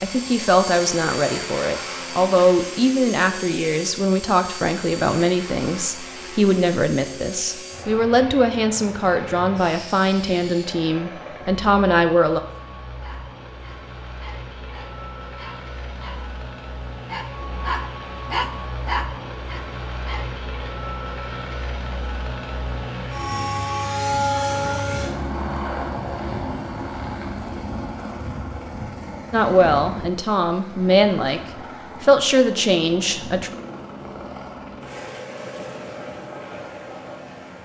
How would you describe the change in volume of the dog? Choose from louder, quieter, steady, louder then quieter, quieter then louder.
louder then quieter.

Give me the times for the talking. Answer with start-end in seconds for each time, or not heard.
0.0-12.4, 29.3-33.5.